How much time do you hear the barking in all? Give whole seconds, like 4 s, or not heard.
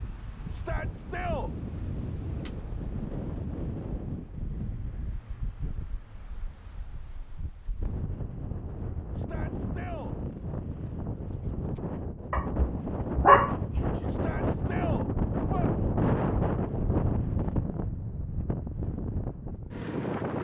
2 s.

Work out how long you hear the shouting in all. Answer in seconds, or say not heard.
4 s.